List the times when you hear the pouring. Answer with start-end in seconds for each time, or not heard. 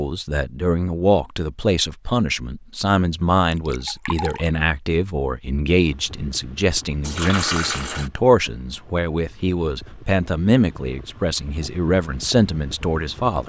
3.5-4.6, 7.0-8.1.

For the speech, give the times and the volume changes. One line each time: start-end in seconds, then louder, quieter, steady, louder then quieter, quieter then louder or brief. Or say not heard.
0.0-13.4 steady.